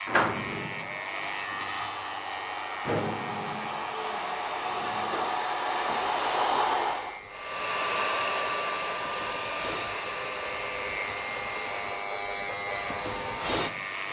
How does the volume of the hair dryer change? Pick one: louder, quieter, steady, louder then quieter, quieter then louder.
louder then quieter.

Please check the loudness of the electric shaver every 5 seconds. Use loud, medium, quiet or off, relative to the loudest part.
loud, medium, loud.